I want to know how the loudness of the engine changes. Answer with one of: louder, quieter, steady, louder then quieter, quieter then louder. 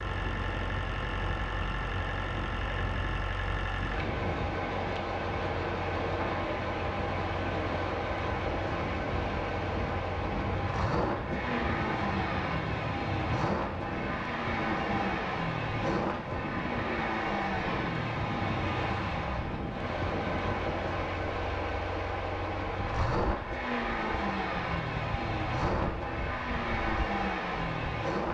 steady.